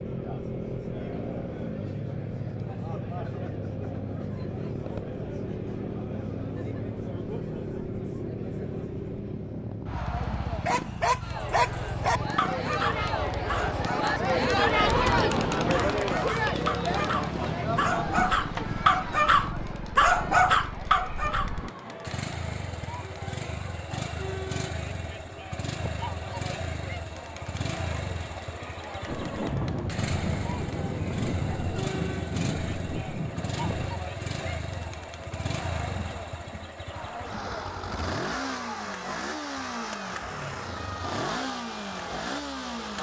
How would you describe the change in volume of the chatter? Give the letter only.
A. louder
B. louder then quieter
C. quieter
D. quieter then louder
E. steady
B.